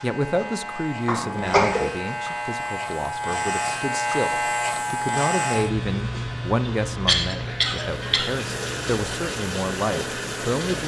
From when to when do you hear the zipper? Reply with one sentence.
You can't hear the zipper here.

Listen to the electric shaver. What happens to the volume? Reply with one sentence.
The volume of the electric shaver goes up, then down.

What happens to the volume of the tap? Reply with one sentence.
The loudness of the tap goes up.